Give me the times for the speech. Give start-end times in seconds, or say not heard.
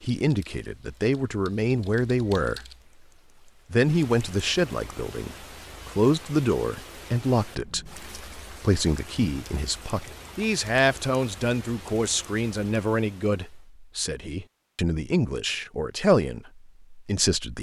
0.0-2.6, 3.7-17.5.